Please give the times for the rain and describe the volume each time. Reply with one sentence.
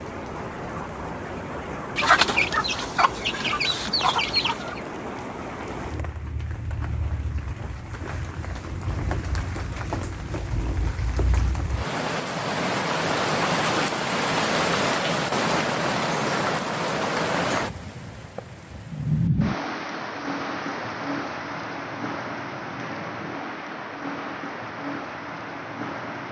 The rain can be heard from 0.0 to 26.2 s, getting louder then quieter.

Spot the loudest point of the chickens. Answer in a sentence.
The loudest moment of the chickens is at 2 seconds.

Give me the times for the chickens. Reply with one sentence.
You can hear the chickens from 1.9 to 4.8 s.